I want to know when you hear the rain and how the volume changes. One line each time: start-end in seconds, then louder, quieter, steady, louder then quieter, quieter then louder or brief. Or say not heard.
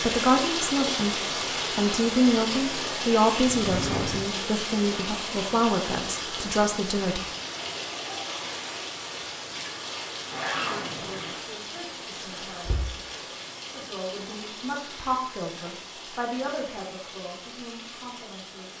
0.0-18.7 quieter.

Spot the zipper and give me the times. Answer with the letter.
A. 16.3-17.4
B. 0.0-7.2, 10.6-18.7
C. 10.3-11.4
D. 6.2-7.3
C.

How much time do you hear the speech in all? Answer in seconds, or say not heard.
15 s.